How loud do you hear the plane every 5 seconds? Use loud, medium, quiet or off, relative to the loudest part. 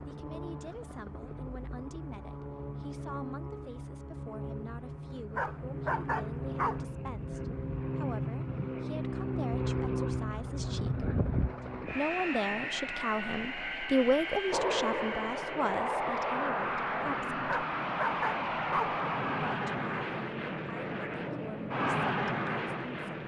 medium, loud, loud, loud, loud.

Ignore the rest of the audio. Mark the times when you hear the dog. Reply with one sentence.
The dog can be heard from 5.3 to 6.8 s and from 17.4 to 19.0 s.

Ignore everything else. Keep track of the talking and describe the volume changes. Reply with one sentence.
The loudness of the talking goes up, then down.